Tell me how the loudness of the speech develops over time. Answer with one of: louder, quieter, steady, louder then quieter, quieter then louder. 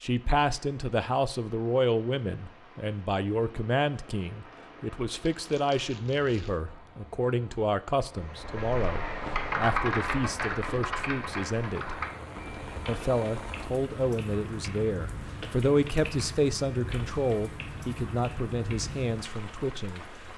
steady.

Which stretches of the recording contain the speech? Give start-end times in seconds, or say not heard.
0.0-12.0, 12.8-20.1.